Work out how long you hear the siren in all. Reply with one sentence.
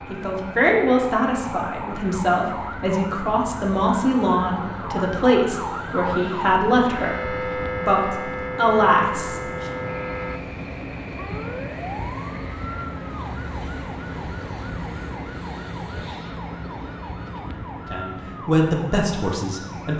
You can hear the siren for 20 seconds altogether.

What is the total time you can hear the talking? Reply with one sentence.
You can hear the talking for 12 seconds altogether.